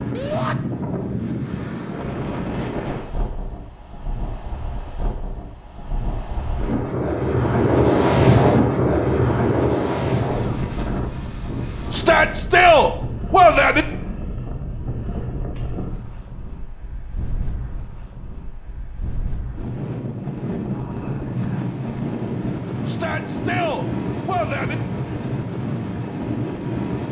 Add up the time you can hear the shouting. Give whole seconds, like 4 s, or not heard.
4 s.